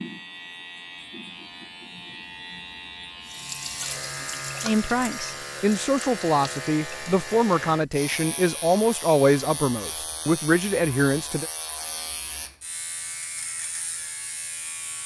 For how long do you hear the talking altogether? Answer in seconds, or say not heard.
7 s.